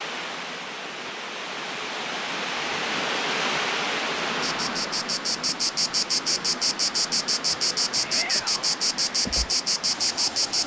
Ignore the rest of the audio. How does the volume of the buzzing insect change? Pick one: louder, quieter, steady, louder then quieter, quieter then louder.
steady.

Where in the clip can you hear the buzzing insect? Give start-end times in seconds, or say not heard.
4.4-10.6.